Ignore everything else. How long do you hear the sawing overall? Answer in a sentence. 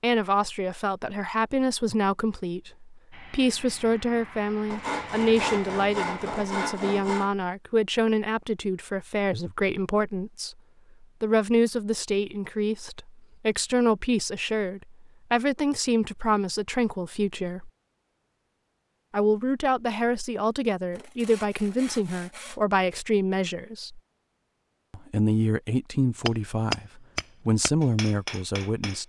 The sawing can be heard for 4 seconds in total.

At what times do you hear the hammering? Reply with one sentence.
You can hear the hammering from 26.2 to 29.0 s.